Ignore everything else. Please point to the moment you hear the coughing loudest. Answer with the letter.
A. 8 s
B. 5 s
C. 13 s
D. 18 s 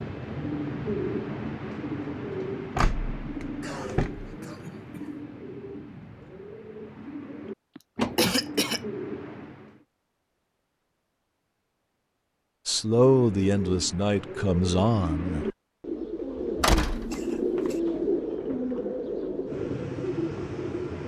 A.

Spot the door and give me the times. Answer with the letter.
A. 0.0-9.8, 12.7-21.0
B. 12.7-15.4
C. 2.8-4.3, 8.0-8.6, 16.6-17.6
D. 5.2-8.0
C.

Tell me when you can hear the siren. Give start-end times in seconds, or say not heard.
not heard.